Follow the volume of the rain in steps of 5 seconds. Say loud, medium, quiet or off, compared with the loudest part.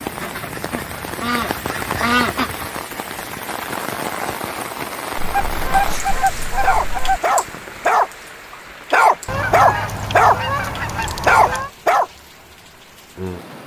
loud, loud, medium.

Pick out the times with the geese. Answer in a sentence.
The geese can be heard from 0.2 to 2.7 s, from 5.2 to 7.2 s and from 9.2 to 11.7 s.